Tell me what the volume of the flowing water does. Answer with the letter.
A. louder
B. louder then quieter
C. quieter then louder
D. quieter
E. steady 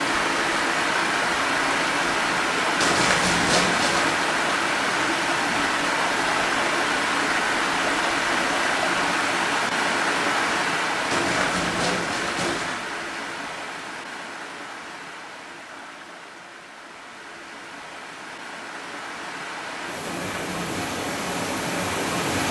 C.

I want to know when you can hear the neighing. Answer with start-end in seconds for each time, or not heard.
2.8-4.2, 11.1-12.8, 20.0-20.9.